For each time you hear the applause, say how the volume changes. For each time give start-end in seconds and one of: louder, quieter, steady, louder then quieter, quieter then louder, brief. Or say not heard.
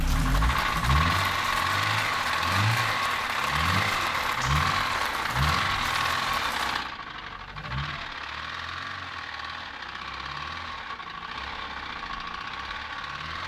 0.0-6.8 steady.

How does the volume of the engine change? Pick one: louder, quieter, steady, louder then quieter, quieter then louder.
quieter.